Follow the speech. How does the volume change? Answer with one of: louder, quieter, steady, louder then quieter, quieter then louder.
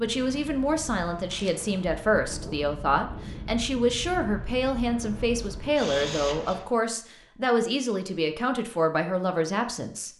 steady.